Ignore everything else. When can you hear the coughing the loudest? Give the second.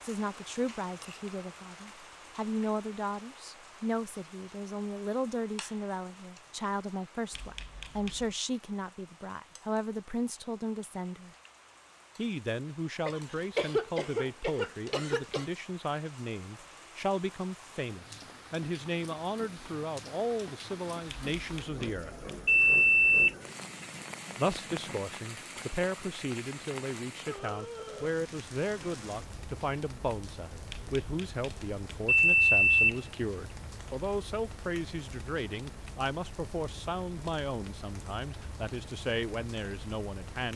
14 s.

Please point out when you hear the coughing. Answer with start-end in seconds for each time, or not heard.
13.1-15.5.